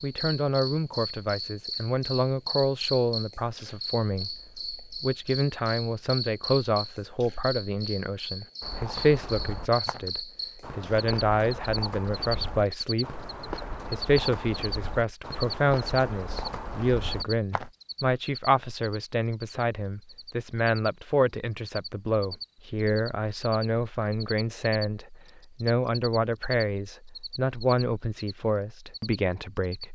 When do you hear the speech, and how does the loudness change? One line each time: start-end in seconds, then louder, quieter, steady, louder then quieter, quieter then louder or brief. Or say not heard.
0.0-29.9 steady.